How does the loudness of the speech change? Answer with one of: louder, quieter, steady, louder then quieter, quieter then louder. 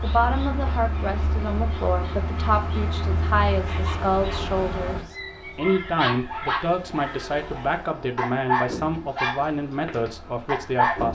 steady.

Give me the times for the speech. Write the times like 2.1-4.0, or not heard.
0.0-11.0.